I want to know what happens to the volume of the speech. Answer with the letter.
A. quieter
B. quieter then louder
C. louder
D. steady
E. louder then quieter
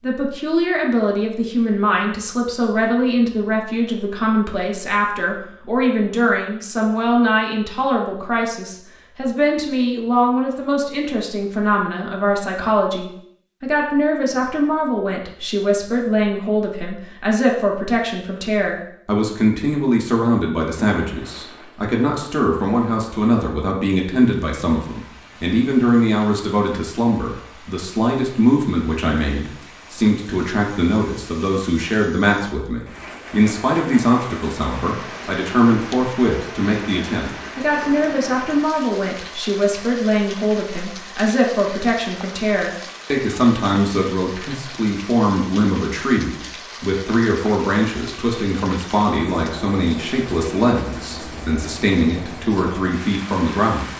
D.